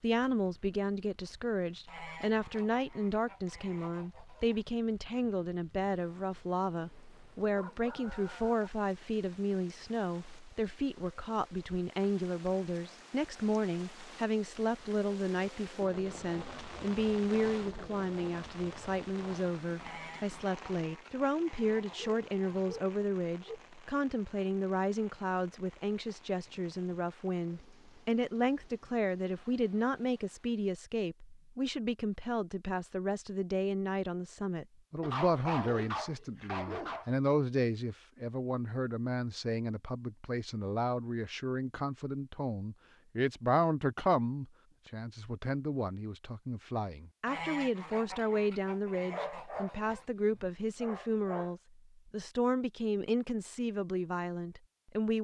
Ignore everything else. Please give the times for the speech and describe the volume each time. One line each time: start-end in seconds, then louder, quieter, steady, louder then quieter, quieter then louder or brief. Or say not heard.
0.0-55.1 steady.